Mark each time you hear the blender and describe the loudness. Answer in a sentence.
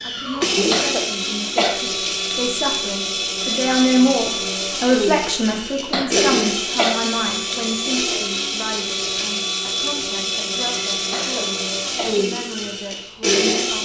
The blender can be heard from 0.0 to 13.7 s, at a steady volume.